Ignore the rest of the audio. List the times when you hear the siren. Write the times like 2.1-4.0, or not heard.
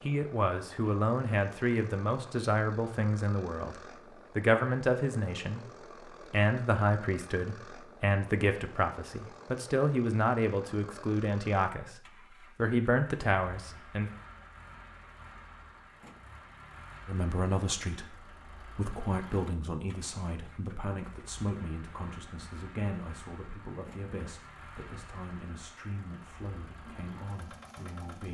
not heard.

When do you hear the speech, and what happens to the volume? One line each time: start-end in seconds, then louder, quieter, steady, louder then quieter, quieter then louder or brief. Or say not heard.
0.0-14.1 steady
17.1-28.3 quieter.